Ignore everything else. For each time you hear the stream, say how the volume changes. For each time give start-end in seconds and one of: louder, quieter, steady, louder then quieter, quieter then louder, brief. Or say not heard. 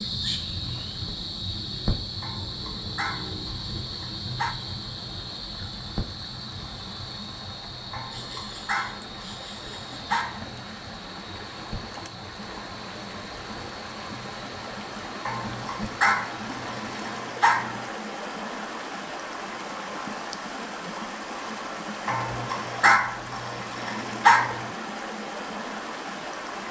0.0-26.6 louder.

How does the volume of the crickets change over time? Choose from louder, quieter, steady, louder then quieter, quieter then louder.
quieter.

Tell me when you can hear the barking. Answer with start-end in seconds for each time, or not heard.
2.2-4.5, 7.9-10.5, 15.2-17.9, 22.1-24.6.